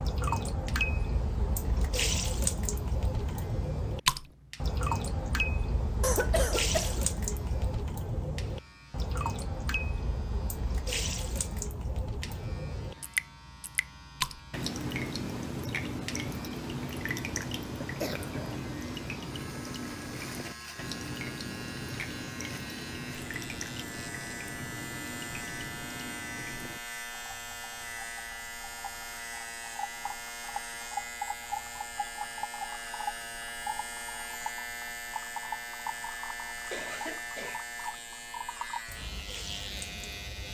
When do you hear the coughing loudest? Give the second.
6 s.